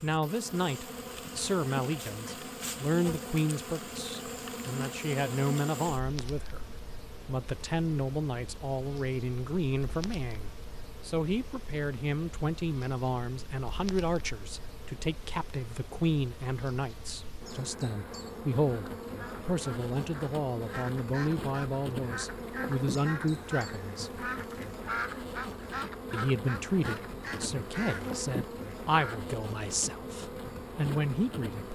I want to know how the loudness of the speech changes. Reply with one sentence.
The loudness of the speech stays about the same.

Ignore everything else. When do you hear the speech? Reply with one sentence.
You can hear the speech from 0.0 to 24.2 s and from 26.1 to 31.7 s.